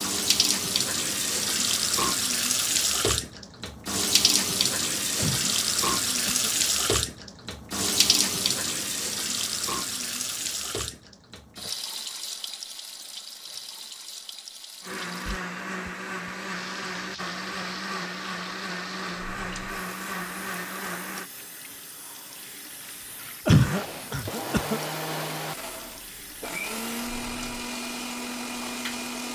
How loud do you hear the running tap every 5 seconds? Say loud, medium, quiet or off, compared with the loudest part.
loud, loud, medium, quiet, quiet, quiet.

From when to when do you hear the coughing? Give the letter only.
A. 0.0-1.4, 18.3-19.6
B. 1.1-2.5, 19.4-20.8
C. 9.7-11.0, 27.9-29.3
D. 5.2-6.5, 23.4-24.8
D.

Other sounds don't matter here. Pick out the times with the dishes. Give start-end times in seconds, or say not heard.
not heard.